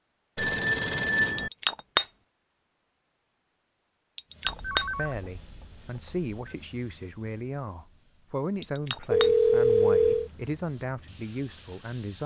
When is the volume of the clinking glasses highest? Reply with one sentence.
The volume of the clinking glasses peaks at 2 seconds.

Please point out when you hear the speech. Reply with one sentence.
The speech can be heard from 5.0 to 12.2 s.